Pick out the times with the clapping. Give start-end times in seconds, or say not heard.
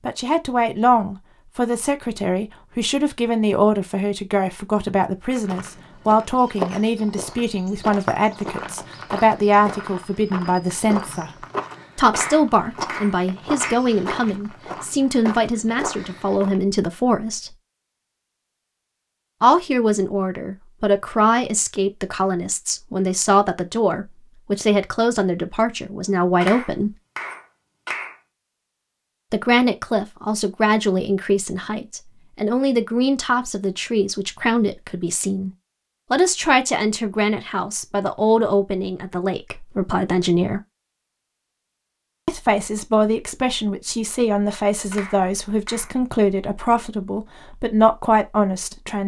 12.1-13.8, 26.4-28.1, 44.9-46.0.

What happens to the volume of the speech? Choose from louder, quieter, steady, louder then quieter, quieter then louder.
steady.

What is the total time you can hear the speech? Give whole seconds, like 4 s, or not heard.
42 s.